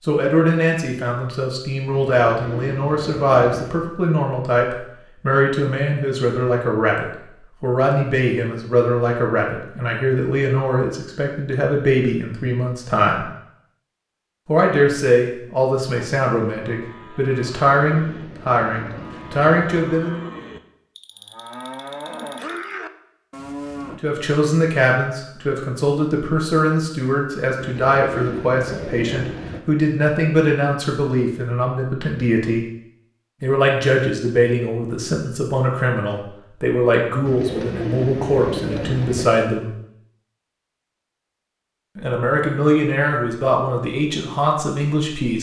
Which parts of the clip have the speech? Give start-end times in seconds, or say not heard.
0.1-13.2, 14.4-20.2, 24.0-32.6, 33.4-39.7, 42.0-45.3.